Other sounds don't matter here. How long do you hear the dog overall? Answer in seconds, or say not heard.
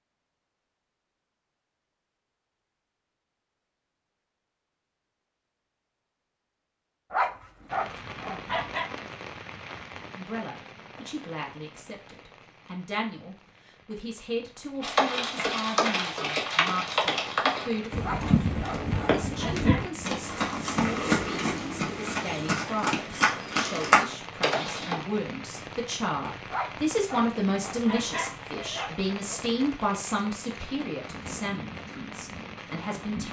7 s.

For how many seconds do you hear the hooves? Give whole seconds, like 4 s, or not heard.
10 s.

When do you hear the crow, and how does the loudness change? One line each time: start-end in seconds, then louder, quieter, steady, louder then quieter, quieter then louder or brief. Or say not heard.
not heard.